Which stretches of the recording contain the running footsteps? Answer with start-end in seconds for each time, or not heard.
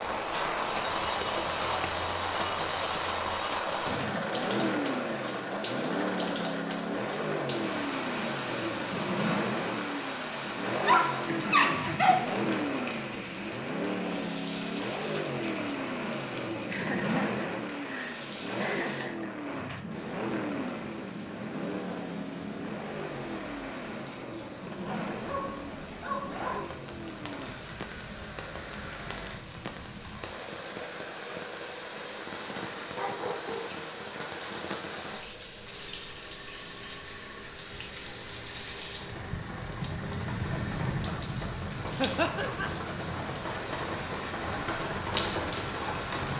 not heard.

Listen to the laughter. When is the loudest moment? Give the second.
42 s.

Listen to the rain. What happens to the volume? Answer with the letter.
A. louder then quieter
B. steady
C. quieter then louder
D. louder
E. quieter
C.